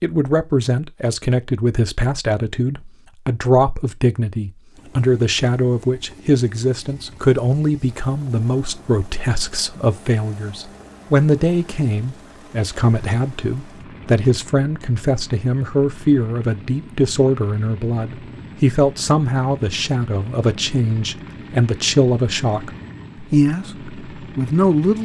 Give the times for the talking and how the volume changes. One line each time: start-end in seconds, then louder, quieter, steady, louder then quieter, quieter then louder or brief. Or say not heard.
0.0-24.9 steady.